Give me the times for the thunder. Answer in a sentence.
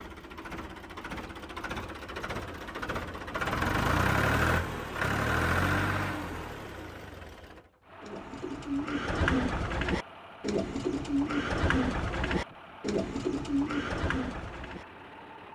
You can't hear the thunder here.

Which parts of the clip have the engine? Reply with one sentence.
The engine can be heard from 0.0 to 15.4 s.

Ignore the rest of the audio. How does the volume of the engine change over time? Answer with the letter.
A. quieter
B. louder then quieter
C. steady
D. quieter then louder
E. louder
B.